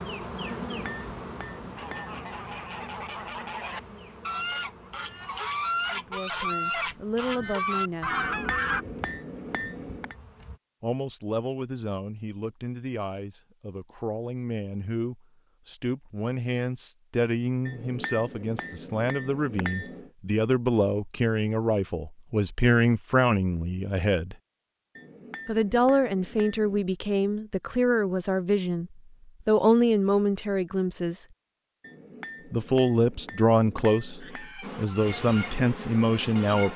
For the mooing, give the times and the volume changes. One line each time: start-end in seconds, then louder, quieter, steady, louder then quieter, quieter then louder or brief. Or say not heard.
not heard.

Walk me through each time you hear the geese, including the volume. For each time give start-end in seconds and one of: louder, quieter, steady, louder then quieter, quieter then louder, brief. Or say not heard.
1.8-8.8 louder
34.2-36.7 brief.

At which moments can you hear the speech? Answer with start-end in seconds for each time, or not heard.
5.9-8.3, 10.8-24.4, 25.4-31.2, 32.5-36.7.